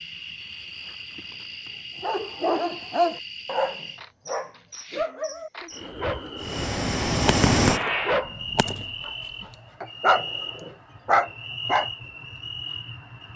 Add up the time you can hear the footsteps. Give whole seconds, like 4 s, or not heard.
not heard.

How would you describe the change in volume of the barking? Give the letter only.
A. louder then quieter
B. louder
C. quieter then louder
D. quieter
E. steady
C.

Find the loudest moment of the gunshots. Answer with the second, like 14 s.
8 s.